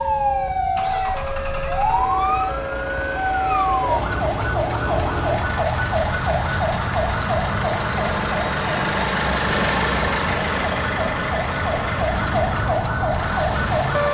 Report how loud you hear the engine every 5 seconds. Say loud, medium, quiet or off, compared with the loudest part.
medium, loud, loud.